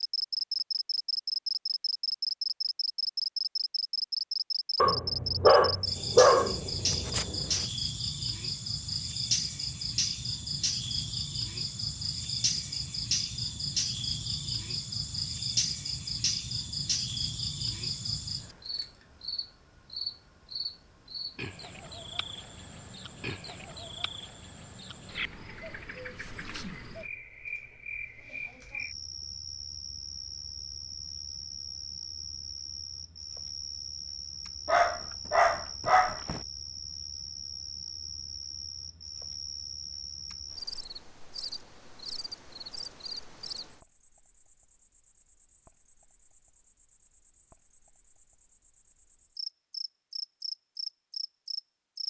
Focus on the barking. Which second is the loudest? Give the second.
6 s.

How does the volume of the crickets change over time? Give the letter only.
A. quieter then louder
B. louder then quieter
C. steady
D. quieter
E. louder
D.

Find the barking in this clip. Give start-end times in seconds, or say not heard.
4.8-7.7, 34.6-36.4.